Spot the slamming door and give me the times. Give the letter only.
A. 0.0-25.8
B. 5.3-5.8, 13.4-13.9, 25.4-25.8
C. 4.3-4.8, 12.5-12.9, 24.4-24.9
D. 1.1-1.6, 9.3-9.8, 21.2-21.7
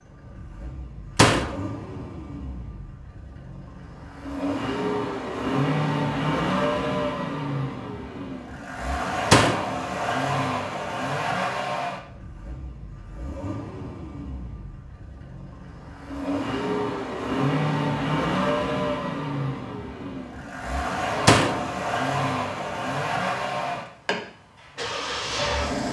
D.